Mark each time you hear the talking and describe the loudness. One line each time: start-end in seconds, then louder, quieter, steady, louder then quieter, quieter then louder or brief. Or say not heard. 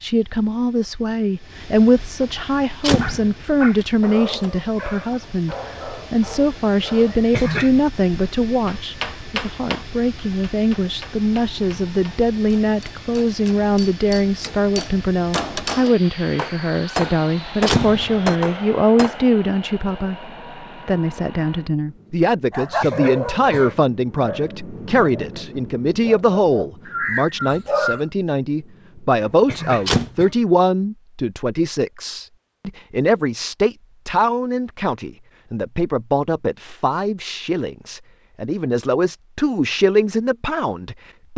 0.0-41.3 steady.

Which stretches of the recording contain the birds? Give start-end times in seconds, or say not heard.
not heard.